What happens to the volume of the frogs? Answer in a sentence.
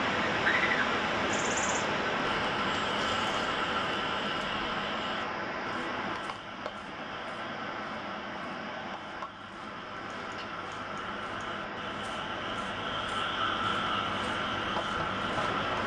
The loudness of the frogs goes down, then up.